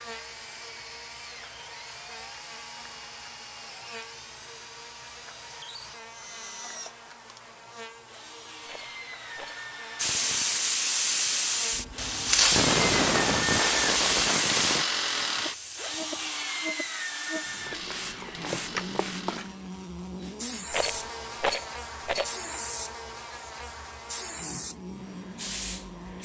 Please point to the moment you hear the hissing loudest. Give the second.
13 s.